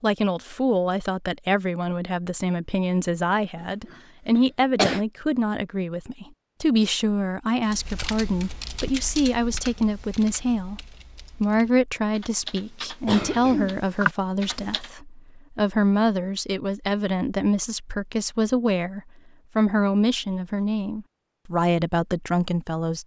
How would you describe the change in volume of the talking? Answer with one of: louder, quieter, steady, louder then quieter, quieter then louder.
steady.